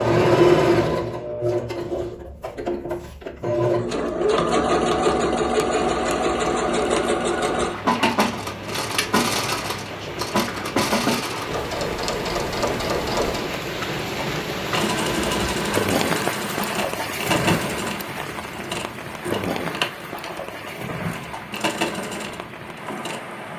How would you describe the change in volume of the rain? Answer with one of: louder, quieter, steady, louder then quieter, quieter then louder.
louder then quieter.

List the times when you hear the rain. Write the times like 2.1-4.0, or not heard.
6.0-23.5.